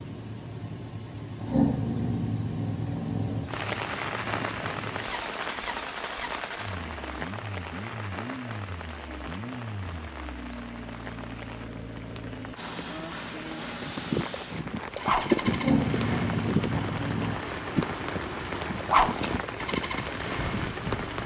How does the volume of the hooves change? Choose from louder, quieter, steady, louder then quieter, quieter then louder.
quieter.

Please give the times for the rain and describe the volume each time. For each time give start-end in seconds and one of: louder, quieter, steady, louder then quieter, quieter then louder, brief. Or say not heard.
3.5-21.2 quieter then louder.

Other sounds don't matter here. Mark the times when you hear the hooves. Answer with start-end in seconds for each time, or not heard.
13.8-21.2.